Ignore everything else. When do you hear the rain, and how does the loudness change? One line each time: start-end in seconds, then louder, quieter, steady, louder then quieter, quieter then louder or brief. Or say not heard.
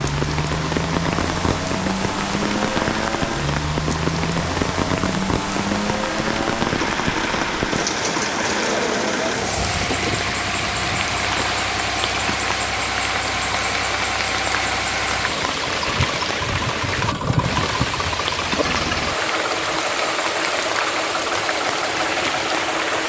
0.0-23.0 steady.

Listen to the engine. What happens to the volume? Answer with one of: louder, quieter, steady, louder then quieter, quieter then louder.
steady.